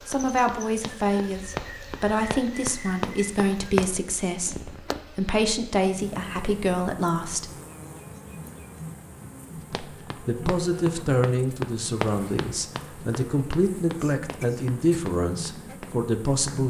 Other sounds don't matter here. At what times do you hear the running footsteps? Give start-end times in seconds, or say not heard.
0.0-4.0, 9.6-16.6.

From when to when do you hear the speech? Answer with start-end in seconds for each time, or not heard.
0.1-7.5, 9.7-16.6.